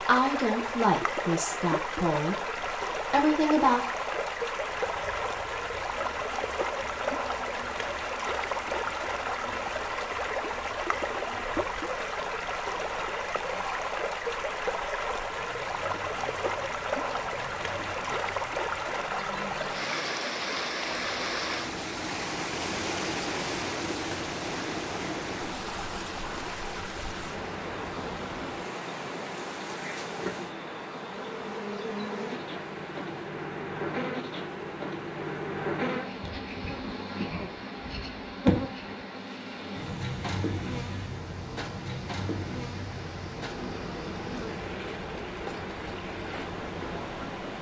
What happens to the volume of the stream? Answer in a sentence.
The loudness of the stream goes down.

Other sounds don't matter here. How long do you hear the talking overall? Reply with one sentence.
The talking can be heard for 4 seconds in total.